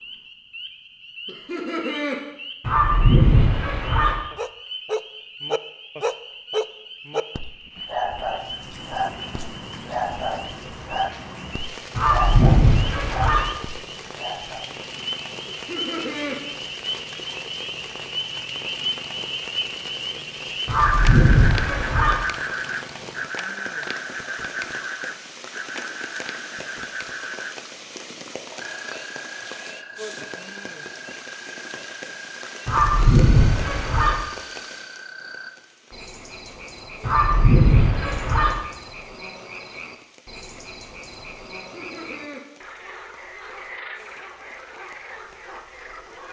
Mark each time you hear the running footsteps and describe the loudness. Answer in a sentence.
The running footsteps can't be heard in this clip.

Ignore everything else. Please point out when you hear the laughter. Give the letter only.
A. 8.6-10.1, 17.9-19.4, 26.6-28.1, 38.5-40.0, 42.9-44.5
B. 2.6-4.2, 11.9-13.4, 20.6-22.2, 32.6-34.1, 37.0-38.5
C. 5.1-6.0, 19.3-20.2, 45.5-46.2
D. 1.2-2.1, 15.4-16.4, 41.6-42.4
D.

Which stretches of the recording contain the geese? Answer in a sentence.
The geese can be heard from 2.6 to 4.2 s, from 11.9 to 13.4 s, from 20.6 to 22.2 s, from 32.6 to 34.1 s and from 37.0 to 38.5 s.